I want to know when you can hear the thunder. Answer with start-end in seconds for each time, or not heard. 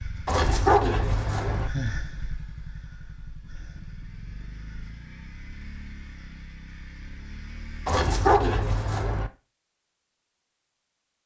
not heard.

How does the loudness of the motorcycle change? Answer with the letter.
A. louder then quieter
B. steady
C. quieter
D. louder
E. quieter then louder
C.